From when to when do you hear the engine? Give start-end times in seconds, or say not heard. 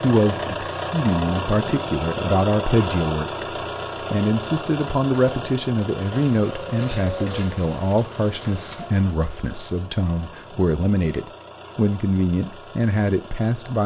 0.0-13.8.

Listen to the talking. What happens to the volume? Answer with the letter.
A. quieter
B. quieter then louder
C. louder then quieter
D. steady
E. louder
D.